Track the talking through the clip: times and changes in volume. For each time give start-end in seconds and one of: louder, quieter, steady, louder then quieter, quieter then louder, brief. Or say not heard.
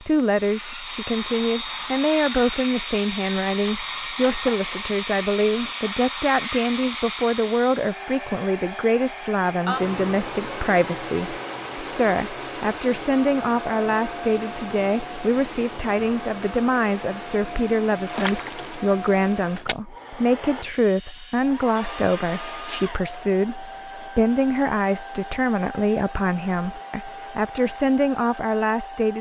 0.0-29.1 steady.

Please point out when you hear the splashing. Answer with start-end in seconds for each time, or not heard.
18.1-18.8.